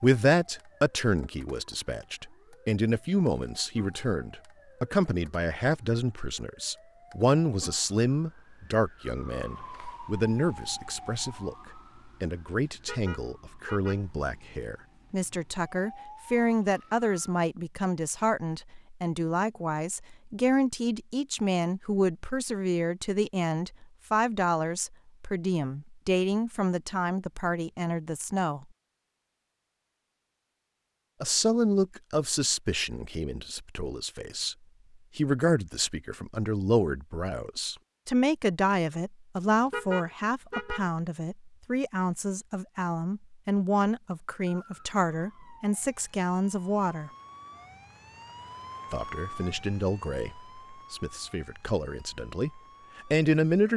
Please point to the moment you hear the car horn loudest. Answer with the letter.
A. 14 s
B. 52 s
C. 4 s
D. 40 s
D.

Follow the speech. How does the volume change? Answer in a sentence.
The loudness of the speech stays about the same.